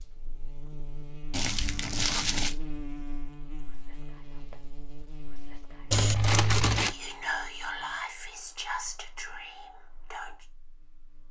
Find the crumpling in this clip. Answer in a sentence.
You can hear the crumpling from 1.3 to 2.5 s and from 5.9 to 7.0 s.